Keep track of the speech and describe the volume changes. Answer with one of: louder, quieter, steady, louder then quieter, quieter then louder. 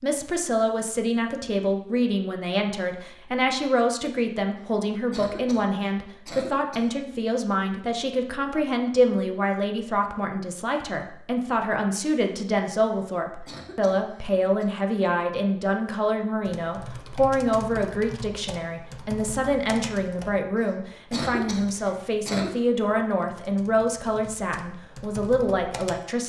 steady.